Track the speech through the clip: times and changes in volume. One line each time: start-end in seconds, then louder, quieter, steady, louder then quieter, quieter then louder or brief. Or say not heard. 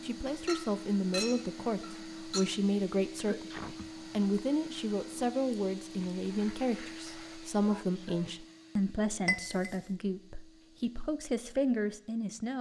0.0-12.5 steady.